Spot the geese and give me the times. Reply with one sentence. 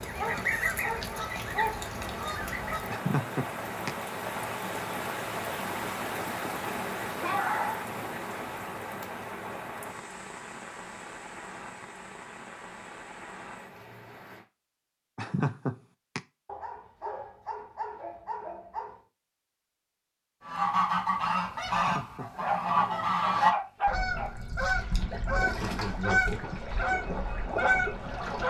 You can hear the geese from 0.0 to 3.0 s and from 20.4 to 28.4 s.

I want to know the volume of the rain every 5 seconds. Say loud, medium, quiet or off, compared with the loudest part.
loud, loud, medium, off, off, off.